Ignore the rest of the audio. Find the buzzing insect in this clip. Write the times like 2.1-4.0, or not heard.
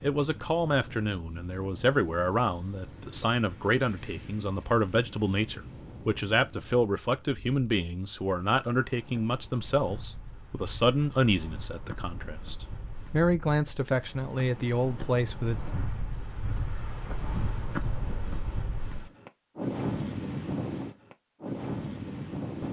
not heard.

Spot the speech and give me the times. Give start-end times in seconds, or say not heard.
0.0-15.6.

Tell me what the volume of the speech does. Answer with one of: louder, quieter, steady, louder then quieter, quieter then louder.
steady.